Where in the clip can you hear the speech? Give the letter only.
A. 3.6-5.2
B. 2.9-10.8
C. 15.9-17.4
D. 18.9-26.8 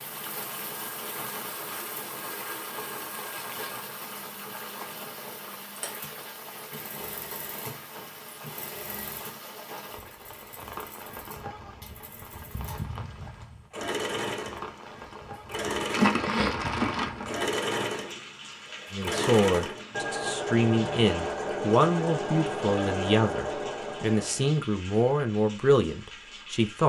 D.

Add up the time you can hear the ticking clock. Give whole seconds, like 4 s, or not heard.
not heard.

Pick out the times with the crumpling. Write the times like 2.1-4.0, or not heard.
15.9-17.4.